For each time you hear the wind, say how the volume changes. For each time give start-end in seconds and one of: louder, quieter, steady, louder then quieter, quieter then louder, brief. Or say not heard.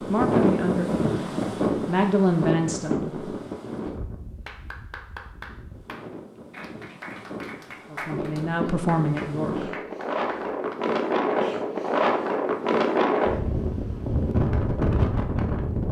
0.0-15.8 quieter then louder.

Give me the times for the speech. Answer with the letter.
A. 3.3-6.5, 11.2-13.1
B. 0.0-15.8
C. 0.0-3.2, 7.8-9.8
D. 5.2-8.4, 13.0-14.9
C.